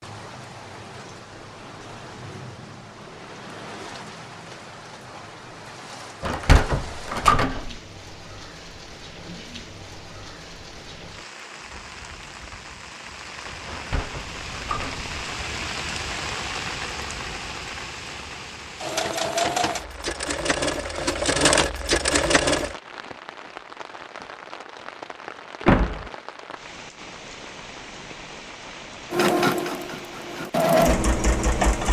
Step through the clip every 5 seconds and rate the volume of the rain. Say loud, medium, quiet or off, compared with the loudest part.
medium, medium, medium, loud, medium, medium, medium.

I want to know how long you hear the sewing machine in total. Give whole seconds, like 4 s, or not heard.
7 s.